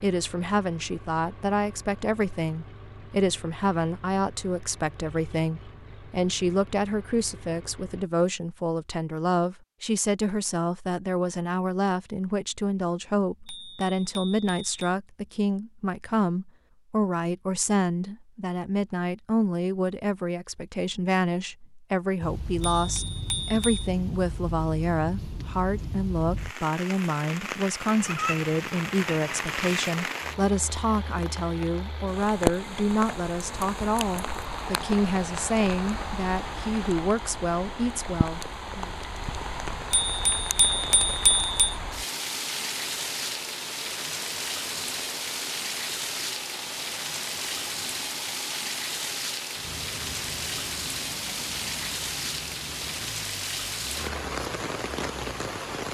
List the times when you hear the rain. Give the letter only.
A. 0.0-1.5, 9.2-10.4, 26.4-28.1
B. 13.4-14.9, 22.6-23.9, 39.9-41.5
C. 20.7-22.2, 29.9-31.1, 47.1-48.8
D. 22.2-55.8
D.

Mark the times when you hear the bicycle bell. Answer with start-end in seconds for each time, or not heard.
13.4-14.9, 22.6-23.9, 39.9-41.5.